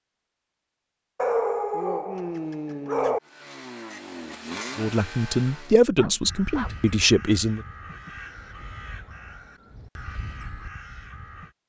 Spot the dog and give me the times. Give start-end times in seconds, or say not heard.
1.1-3.2, 6.0-6.8.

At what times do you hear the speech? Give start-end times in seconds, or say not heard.
4.8-7.6.